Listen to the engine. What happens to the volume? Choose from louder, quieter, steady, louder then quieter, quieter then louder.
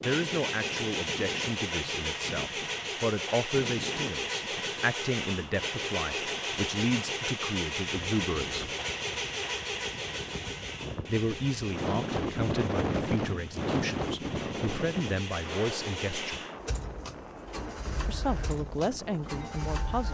quieter.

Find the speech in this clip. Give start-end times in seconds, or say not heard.
0.0-8.7, 11.1-16.4, 18.1-20.0.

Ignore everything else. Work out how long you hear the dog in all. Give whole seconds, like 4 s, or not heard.
not heard.